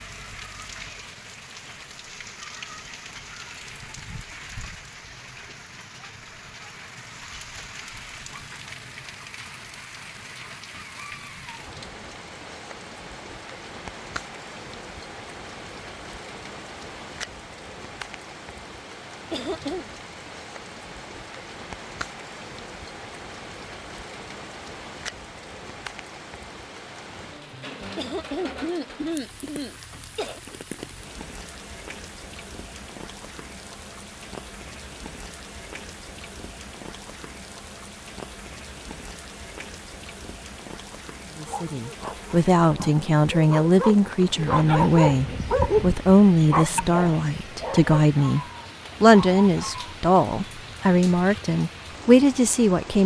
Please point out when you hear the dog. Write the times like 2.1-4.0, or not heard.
41.5-50.0.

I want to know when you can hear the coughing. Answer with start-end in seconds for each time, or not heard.
19.3-19.9, 27.9-30.4.